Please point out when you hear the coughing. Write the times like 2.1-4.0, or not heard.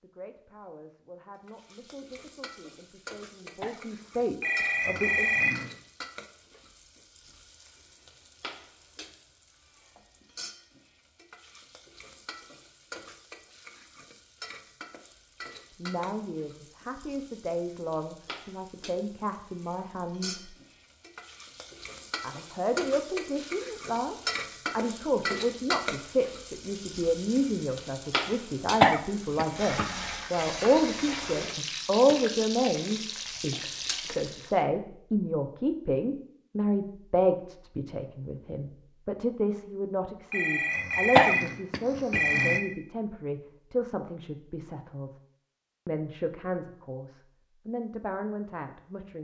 3.6-4.7, 28.8-29.9, 41.1-42.2.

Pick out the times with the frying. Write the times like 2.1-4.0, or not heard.
1.4-34.5.